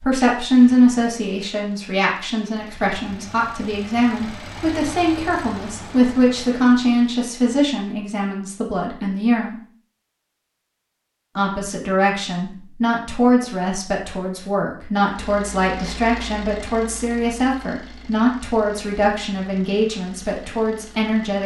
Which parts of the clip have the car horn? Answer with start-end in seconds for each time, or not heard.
not heard.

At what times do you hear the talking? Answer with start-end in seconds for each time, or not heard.
0.0-9.6, 11.3-21.4.